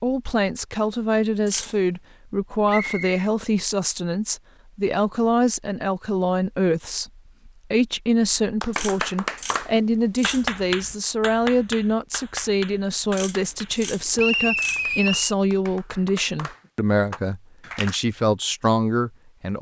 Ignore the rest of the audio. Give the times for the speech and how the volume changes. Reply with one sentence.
The speech can be heard from 0.0 to 19.5 s, at a steady volume.